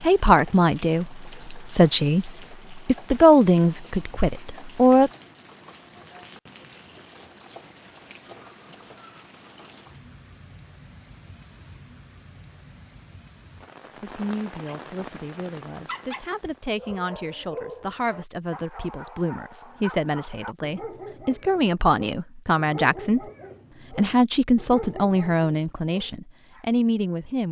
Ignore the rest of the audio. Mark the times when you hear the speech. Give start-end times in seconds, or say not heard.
0.0-5.1, 14.0-23.2, 23.9-27.4.